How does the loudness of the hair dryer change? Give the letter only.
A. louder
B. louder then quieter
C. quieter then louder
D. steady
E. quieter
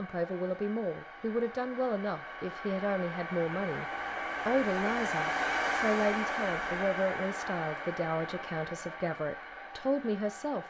B.